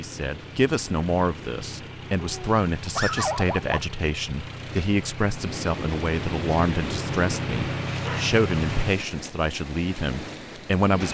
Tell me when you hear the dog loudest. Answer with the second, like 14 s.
3 s.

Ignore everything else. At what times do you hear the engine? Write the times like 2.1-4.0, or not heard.
0.0-8.9.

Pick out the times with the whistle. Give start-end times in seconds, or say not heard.
not heard.